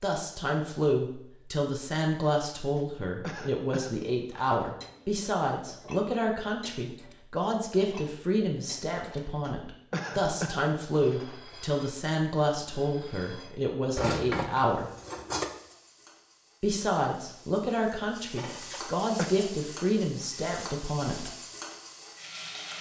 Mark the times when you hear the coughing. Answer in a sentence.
You can hear the coughing from 2.5 to 4.7 s, from 9.1 to 11.4 s and from 18.4 to 19.3 s.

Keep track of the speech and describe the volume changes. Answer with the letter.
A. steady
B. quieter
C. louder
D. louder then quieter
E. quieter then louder
A.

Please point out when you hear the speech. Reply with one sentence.
You can hear the speech from 0.0 to 14.9 s and from 16.6 to 21.3 s.